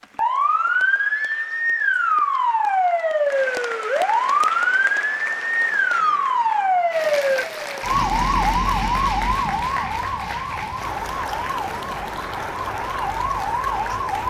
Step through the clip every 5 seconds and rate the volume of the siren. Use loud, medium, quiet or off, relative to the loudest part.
loud, loud, medium.